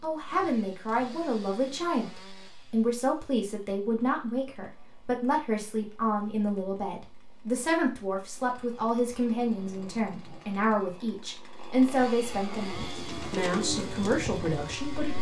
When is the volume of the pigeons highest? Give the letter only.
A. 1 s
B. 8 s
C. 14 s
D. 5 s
C.